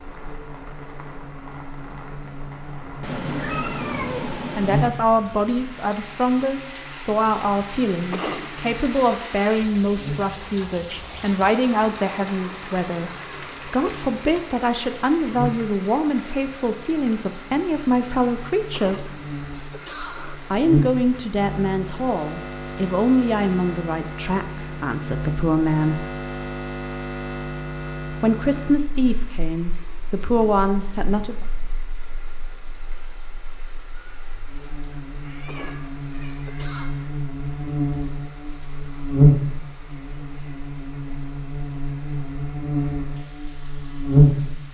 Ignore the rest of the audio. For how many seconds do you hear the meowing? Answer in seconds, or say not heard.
4 s.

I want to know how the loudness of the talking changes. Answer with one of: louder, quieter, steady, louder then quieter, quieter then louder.
steady.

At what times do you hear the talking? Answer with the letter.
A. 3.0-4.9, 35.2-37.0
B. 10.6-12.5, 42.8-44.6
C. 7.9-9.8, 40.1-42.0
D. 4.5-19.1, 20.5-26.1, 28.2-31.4
D.